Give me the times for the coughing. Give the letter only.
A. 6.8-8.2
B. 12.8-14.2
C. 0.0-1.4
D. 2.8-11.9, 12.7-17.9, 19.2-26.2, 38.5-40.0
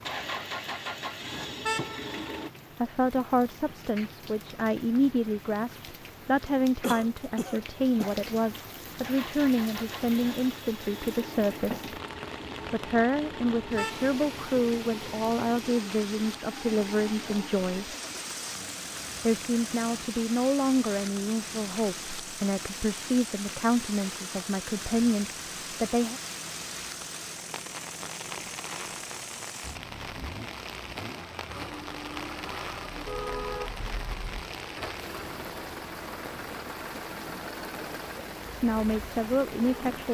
A.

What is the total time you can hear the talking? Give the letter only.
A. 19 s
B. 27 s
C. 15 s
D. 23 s
D.